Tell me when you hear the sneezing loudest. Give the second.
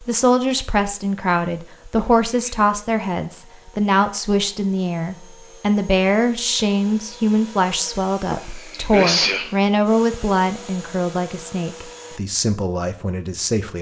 9 s.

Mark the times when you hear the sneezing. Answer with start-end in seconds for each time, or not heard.
1.9-2.6, 8.2-9.5.